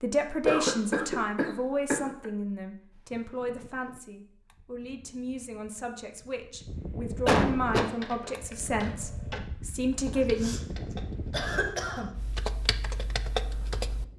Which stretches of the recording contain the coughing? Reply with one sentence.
The coughing can be heard from 0.5 to 2.2 s, from 7.2 to 7.9 s, from 10.2 to 10.6 s and from 11.3 to 12.1 s.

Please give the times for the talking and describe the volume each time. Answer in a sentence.
You can hear the talking from 0.0 to 10.6 s, getting quieter then louder.